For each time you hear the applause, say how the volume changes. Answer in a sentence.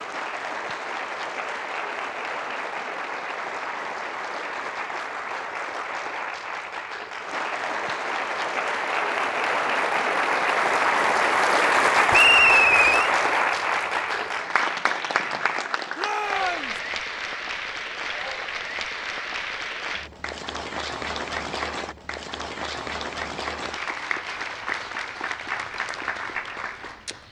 You can hear the applause from 0.0 to 27.2 s, getting louder then quieter.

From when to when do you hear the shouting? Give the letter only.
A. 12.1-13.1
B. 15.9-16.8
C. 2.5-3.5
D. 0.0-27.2
B.